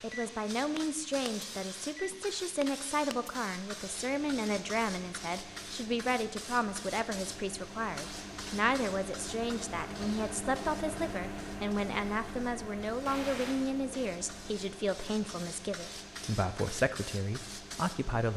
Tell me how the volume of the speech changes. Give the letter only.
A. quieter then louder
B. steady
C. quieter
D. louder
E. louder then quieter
B.